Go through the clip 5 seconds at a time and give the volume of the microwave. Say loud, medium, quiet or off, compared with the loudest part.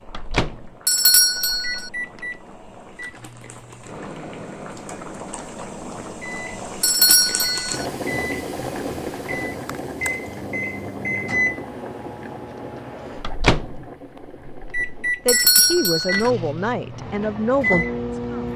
medium, medium, loud, loud.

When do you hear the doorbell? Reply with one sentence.
The doorbell can be heard from 0.8 to 1.9 s, from 6.8 to 7.8 s and from 15.2 to 16.3 s.